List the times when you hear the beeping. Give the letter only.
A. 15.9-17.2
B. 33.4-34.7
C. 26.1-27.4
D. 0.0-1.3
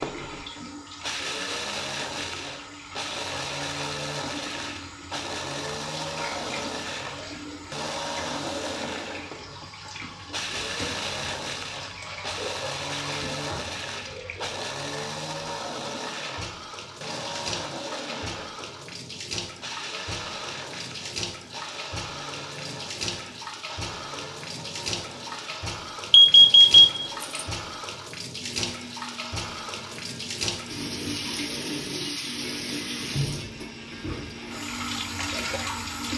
C.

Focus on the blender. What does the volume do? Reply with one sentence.
The loudness of the blender goes down.